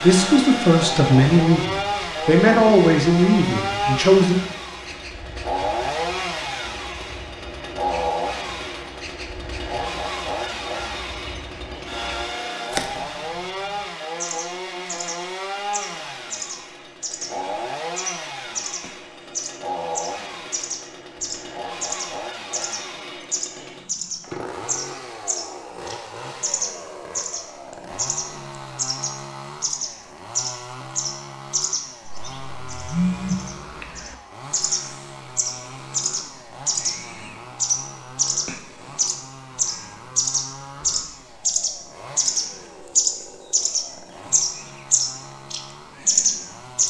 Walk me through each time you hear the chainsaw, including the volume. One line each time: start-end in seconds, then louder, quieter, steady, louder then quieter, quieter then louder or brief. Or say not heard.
0.0-46.8 quieter.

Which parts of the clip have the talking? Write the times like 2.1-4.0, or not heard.
0.0-4.4.